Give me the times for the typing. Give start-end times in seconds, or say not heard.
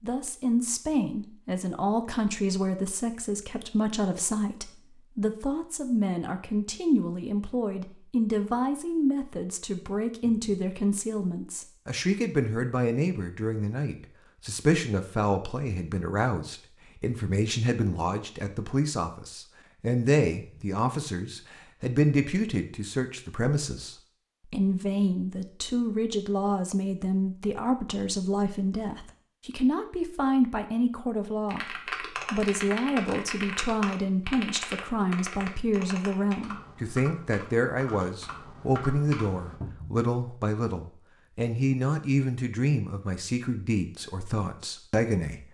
31.4-39.6.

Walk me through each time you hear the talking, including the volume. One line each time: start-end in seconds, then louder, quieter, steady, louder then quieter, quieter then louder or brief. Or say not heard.
0.0-45.4 steady.